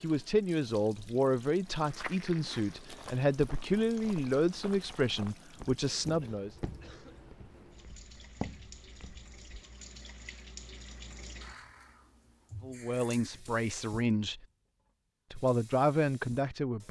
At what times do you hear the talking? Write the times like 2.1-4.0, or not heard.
0.0-6.5, 12.6-14.4, 15.3-16.8.